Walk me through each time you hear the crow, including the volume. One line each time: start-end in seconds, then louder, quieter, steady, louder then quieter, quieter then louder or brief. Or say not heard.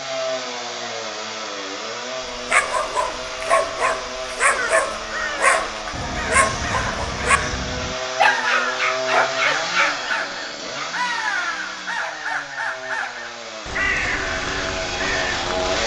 4.5-15.8 steady.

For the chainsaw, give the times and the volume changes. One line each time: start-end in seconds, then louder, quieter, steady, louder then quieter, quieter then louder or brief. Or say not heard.
0.0-15.8 steady.